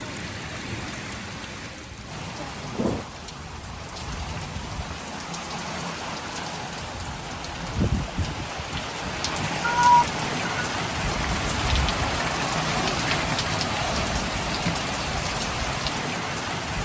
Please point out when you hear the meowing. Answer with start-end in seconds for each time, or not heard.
9.6-10.7.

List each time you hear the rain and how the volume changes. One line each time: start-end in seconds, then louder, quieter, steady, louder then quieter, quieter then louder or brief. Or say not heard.
0.0-16.8 louder.